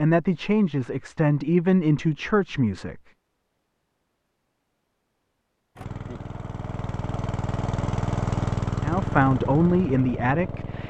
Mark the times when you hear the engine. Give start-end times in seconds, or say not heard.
5.8-10.8.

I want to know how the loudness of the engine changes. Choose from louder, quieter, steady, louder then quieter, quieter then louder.
louder then quieter.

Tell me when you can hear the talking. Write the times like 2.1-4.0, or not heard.
0.0-3.0, 8.8-10.8.